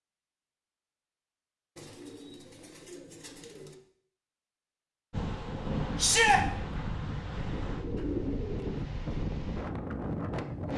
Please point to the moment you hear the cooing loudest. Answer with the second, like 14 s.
8 s.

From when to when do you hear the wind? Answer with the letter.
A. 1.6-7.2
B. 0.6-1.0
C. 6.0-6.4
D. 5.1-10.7
D.